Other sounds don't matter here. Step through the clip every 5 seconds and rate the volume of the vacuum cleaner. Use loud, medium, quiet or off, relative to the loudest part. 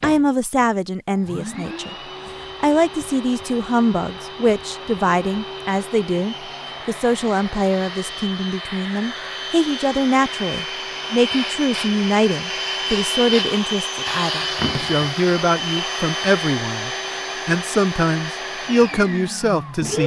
medium, medium, loud, loud.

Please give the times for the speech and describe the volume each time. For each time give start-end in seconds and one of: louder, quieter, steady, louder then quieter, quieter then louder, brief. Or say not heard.
0.0-1.9 brief
2.6-20.0 steady.